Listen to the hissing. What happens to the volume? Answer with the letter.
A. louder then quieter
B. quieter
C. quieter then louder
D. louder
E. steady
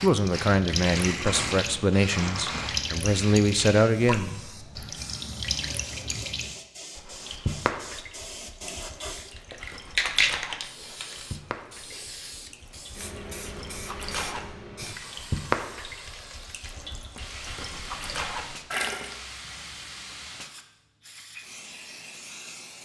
A.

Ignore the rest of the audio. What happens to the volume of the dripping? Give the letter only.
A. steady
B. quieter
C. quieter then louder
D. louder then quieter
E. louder
C.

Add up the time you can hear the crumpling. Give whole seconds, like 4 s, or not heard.
2 s.